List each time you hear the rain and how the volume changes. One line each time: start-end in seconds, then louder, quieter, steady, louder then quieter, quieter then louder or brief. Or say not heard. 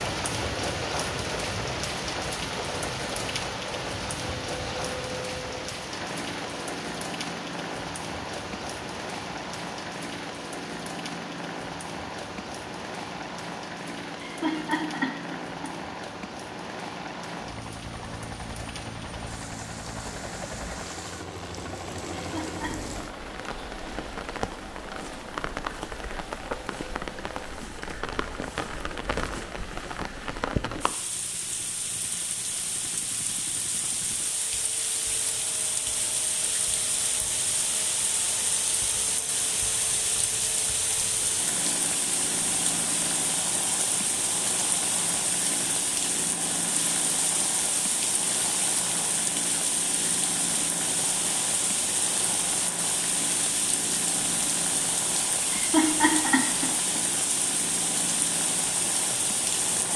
0.0-59.9 quieter then louder.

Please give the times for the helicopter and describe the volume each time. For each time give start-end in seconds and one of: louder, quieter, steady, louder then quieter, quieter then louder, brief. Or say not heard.
0.1-59.9 quieter then louder.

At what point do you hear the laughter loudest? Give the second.
56 s.